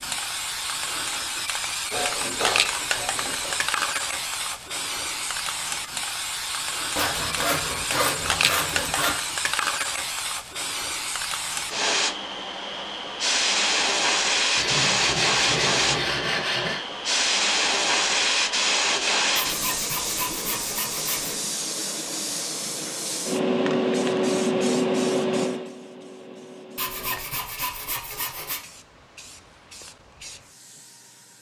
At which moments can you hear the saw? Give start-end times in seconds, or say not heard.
1.9-3.5, 7.0-9.2, 14.6-16.9, 19.4-21.4, 26.8-28.6.